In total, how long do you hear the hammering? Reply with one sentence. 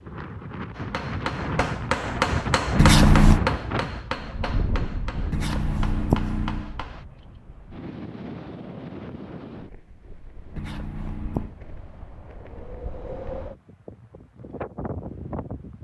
The hammering can be heard for 6 seconds in total.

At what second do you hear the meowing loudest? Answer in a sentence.
The volume of the meowing peaks at 3 seconds.